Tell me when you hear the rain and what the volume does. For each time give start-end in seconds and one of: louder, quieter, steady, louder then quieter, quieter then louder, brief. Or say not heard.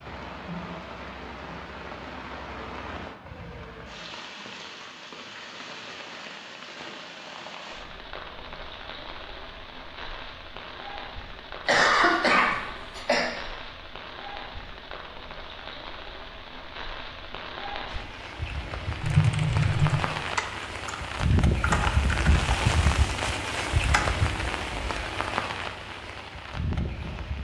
0.0-27.3 louder.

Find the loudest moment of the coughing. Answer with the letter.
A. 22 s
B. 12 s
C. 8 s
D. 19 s
B.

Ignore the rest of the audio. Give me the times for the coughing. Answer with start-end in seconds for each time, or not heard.
11.7-13.2.